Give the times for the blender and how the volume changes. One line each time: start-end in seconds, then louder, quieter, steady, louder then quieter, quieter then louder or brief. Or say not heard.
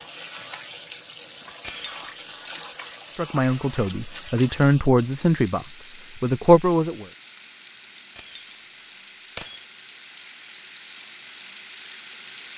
not heard.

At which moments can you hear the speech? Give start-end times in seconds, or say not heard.
3.1-7.0.